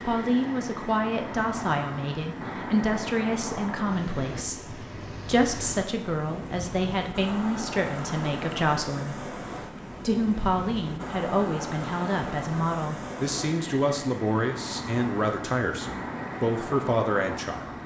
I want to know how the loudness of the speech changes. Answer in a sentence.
The volume of the speech stays about the same.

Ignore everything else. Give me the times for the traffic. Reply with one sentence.
The traffic can be heard from 0.0 to 17.8 s.